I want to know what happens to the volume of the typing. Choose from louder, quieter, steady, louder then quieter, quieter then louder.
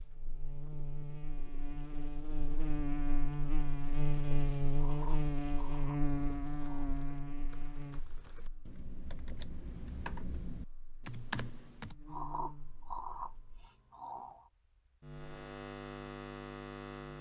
louder.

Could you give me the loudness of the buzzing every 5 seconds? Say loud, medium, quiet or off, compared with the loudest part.
loud, loud, quiet, medium.